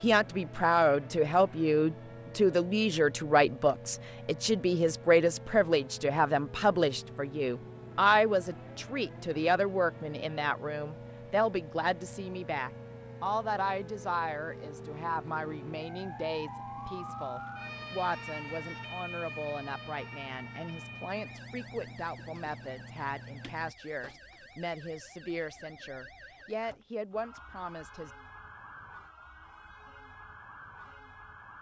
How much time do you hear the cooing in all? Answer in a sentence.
You can't hear the cooing here.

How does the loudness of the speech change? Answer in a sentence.
The loudness of the speech goes down.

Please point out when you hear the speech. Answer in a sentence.
The speech can be heard from 0.0 to 28.1 s.